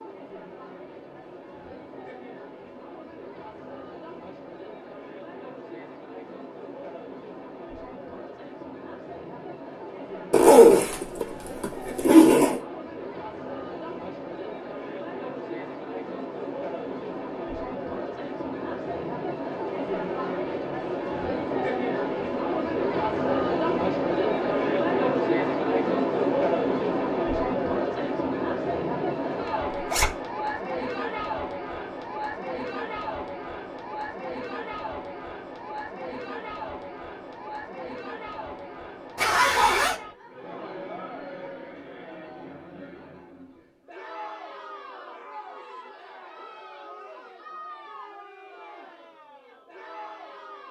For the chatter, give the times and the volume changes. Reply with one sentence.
The chatter can be heard from 0.0 to 50.6 s, getting louder then quieter.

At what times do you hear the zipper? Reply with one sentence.
The zipper can be heard from 10.3 to 12.6 s, from 29.7 to 30.1 s and from 39.1 to 40.0 s.